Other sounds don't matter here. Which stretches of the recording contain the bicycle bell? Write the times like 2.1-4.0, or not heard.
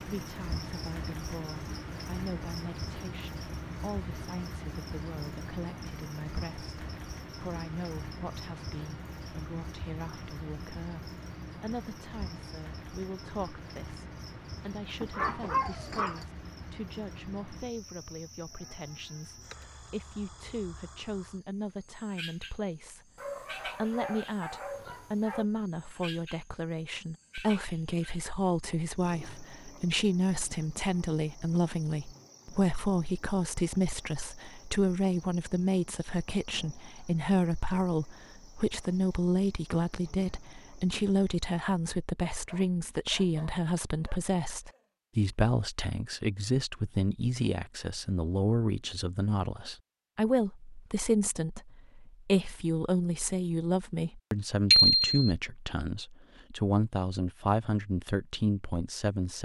54.7-55.2.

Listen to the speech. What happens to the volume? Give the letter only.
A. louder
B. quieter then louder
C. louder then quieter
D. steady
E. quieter
A.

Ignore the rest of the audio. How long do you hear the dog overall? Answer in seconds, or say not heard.
6 s.